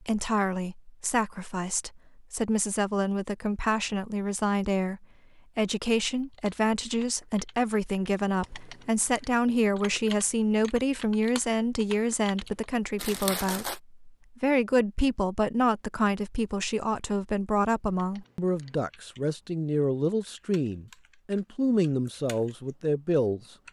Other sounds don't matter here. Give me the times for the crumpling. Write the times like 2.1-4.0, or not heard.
12.9-13.8.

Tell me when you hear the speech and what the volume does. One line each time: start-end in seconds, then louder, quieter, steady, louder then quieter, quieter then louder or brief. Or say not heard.
0.0-23.4 steady.